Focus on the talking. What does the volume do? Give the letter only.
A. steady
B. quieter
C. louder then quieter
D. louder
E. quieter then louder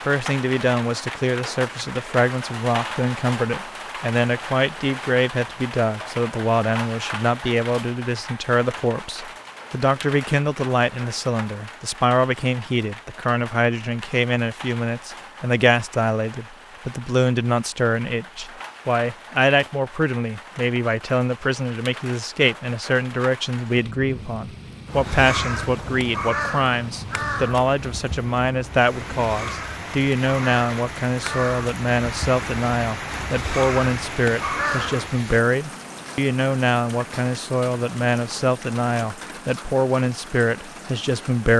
A.